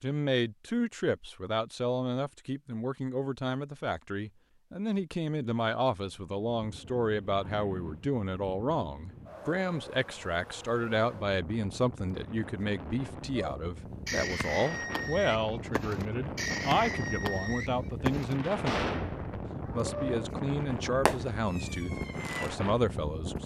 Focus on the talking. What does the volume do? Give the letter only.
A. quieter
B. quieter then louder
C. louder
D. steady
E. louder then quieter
D.